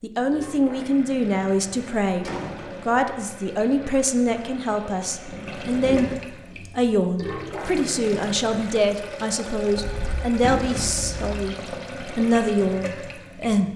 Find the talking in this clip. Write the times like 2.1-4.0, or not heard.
0.0-6.1, 6.8-11.6, 12.2-13.7.